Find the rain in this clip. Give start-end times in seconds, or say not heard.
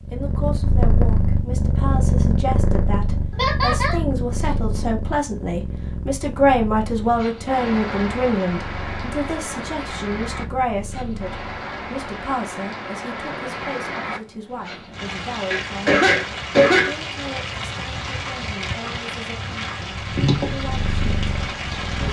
7.0-22.0.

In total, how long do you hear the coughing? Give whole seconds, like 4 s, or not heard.
2 s.